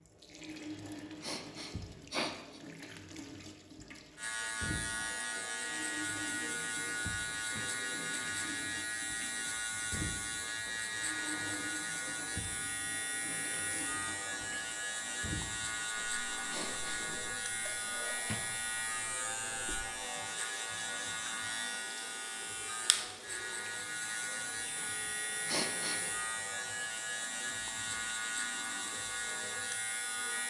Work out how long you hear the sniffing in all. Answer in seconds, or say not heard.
5 s.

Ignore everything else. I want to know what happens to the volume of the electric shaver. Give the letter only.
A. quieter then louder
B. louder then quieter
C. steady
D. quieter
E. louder
C.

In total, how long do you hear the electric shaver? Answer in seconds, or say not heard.
26 s.